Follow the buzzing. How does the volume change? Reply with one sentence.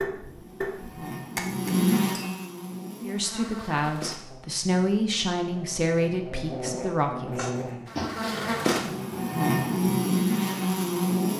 The volume of the buzzing goes down, then up.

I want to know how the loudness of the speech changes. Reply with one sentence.
The volume of the speech stays about the same.